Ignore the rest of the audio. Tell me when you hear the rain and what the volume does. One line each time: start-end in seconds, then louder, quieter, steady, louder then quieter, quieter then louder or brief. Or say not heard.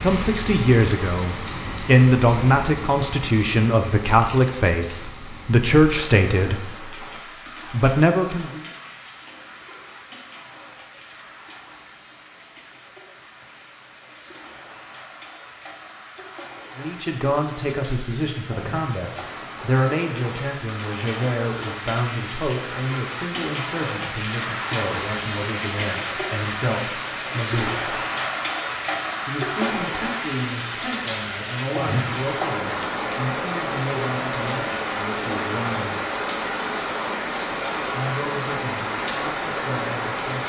0.0-40.4 quieter then louder.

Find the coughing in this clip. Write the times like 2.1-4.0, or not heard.
not heard.